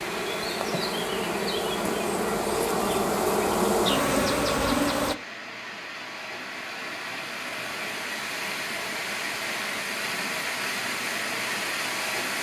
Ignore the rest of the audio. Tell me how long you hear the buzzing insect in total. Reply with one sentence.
The buzzing insect can be heard for 5 seconds in total.